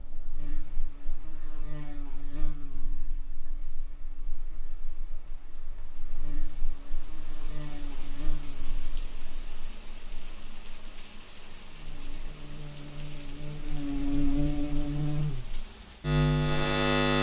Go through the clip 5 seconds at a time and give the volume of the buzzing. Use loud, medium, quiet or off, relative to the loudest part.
quiet, quiet, medium, loud.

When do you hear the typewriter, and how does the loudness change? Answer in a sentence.
You can't hear the typewriter here.